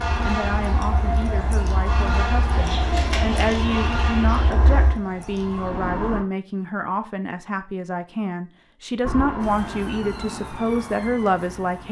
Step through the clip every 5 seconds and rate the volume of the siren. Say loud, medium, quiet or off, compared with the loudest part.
loud, loud, medium.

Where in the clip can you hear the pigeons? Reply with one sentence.
The pigeons can be heard from 2.5 to 4.5 s.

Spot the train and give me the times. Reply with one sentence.
You can hear the train from 0.0 to 5.0 s.